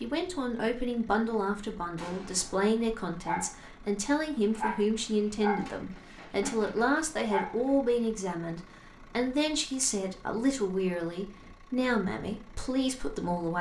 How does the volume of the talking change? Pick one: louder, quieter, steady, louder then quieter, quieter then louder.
steady.